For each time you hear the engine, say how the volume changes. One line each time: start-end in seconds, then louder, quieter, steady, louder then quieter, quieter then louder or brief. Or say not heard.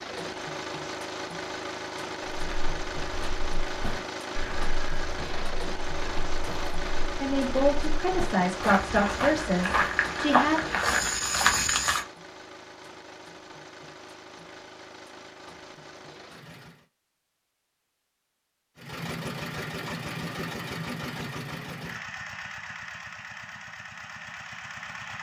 0.0-16.9 quieter
18.8-25.1 quieter.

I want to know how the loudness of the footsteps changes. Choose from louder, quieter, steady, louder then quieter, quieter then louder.
louder.